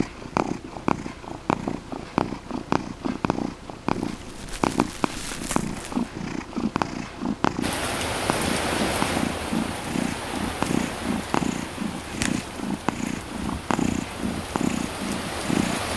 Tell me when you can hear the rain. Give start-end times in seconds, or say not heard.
7.6-15.9.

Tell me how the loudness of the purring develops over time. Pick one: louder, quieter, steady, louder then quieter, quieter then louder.
steady.